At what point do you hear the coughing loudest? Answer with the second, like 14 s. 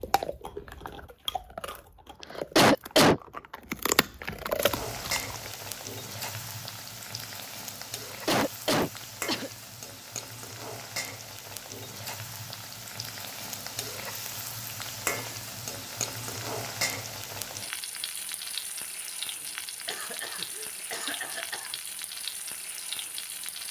3 s.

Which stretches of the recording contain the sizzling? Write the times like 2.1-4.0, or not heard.
4.6-23.6.